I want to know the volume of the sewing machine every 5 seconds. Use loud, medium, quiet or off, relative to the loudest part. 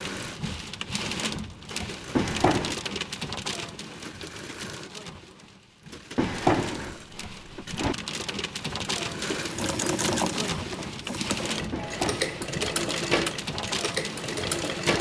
medium, medium, loud.